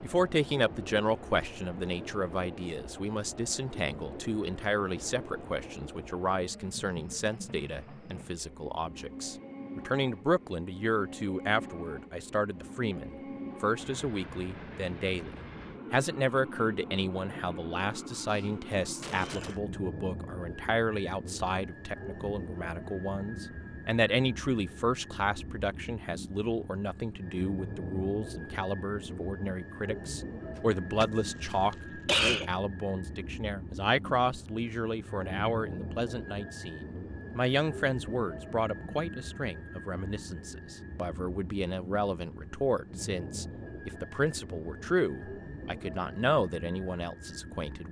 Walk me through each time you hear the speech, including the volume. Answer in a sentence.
The speech can be heard from 0.0 to 47.8 s, at a steady volume.